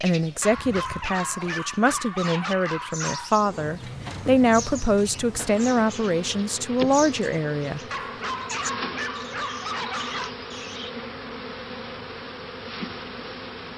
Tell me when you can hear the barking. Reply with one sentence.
You can hear the barking from 0.4 to 3.4 s and from 7.9 to 10.3 s.